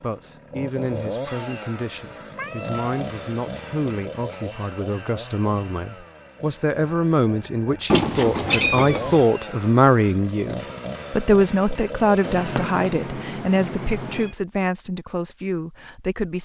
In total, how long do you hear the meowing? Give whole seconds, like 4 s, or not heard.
4 s.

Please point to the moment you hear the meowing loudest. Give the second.
8 s.